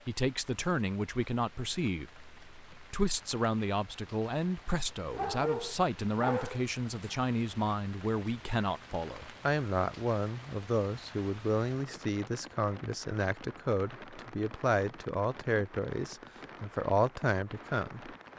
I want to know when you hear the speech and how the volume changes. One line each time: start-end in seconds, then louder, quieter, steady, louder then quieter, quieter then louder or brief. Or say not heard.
0.1-18.1 steady.